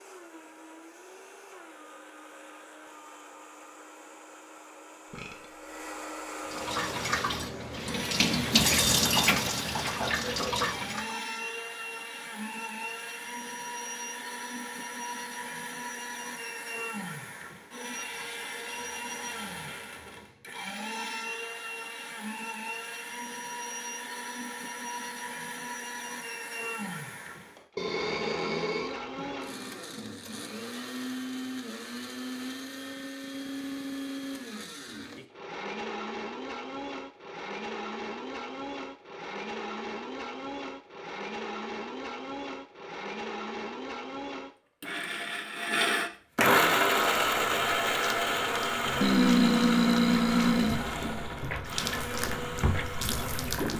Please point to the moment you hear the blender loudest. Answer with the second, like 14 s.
47 s.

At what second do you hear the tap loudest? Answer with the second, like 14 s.
9 s.